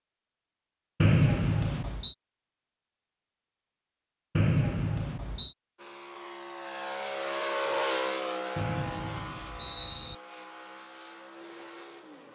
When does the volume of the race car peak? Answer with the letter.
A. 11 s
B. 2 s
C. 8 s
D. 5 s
C.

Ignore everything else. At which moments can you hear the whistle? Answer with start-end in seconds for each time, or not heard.
1.0-2.1, 4.3-5.5, 8.6-10.2.